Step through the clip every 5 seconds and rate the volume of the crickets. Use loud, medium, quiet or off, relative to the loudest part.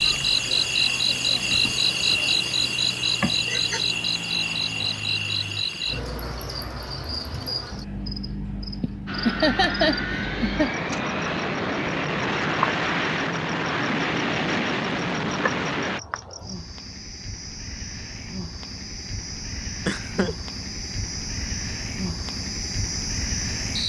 loud, medium, medium, quiet, medium.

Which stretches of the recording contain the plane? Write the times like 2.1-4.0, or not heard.
0.0-5.7, 9.1-16.0.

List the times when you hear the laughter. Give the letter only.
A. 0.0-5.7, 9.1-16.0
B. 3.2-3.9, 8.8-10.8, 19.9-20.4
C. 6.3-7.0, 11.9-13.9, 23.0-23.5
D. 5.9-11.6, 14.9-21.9
B.